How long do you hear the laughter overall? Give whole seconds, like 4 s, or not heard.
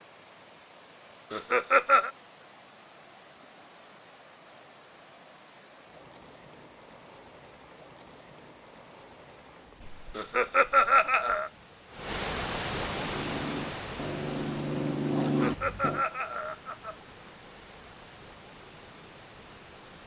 4 s.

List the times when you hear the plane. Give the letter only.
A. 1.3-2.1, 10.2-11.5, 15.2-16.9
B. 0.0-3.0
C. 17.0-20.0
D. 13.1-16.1
D.